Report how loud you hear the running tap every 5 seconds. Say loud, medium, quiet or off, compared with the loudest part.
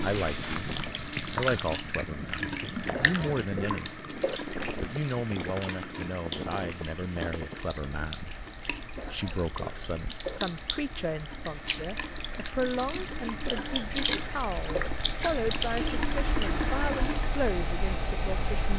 loud, medium, loud, loud.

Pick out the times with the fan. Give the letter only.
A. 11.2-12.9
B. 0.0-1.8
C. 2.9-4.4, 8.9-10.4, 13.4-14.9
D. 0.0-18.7
D.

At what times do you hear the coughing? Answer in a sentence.
You can hear the coughing from 2.9 to 4.4 s, from 8.9 to 10.4 s and from 13.4 to 14.9 s.